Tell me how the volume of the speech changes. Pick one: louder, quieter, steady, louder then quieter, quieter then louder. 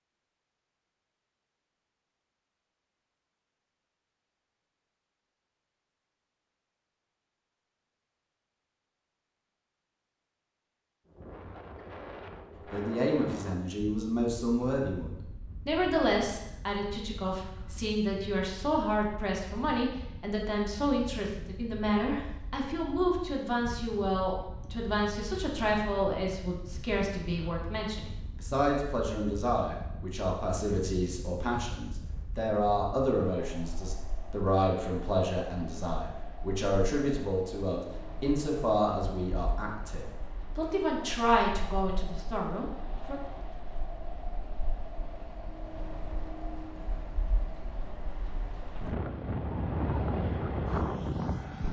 steady.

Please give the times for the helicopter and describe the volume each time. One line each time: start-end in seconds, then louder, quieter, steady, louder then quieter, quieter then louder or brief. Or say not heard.
not heard.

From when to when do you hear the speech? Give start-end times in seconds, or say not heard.
12.7-43.1.